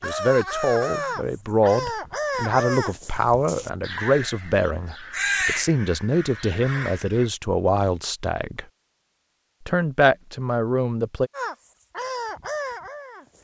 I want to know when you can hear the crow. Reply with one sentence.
The crow can be heard from 0.0 to 7.3 s and from 11.3 to 13.3 s.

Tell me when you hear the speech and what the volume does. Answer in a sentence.
The speech can be heard from 0.0 to 8.7 s, at a steady volume; and briefly from 9.7 to 11.3 s.